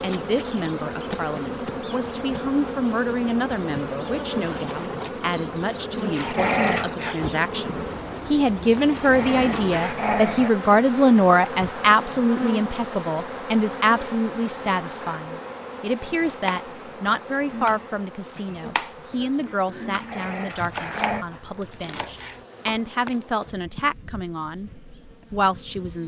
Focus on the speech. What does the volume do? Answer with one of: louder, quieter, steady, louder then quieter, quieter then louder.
louder then quieter.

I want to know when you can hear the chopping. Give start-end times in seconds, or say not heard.
16.1-22.9.